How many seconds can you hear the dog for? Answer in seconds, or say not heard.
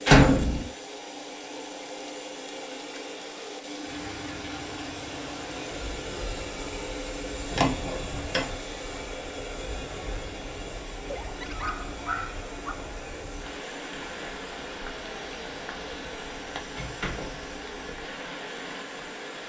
2 s.